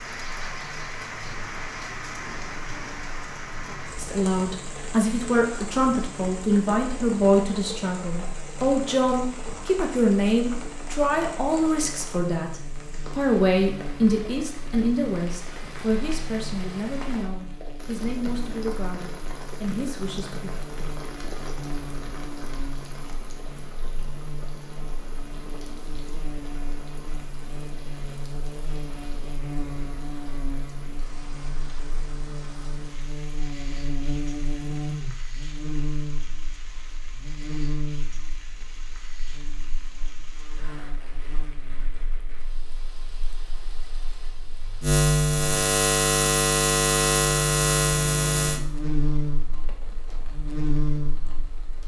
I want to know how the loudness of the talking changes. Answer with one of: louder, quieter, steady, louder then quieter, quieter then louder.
quieter.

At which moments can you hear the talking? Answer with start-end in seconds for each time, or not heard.
4.0-20.6.